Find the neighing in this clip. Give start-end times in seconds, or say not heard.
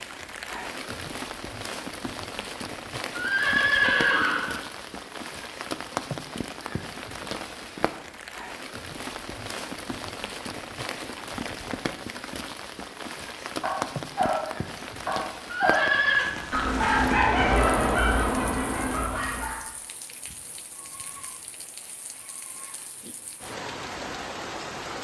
3.1-4.6, 15.5-16.4.